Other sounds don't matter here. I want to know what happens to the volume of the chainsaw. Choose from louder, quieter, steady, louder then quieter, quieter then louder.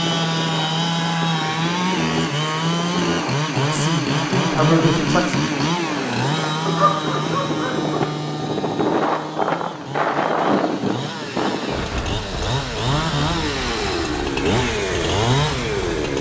quieter then louder.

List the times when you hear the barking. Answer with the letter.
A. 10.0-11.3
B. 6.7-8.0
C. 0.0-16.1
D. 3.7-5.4
B.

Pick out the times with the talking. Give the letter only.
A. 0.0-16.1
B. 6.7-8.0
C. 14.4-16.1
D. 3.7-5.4
D.